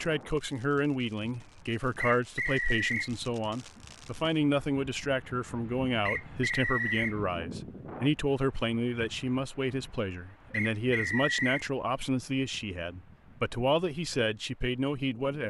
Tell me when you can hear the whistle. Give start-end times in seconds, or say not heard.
1.9-3.1, 6.0-7.2, 10.5-11.7.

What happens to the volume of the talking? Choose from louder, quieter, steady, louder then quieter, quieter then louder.
steady.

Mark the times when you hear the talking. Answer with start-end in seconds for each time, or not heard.
0.0-15.4.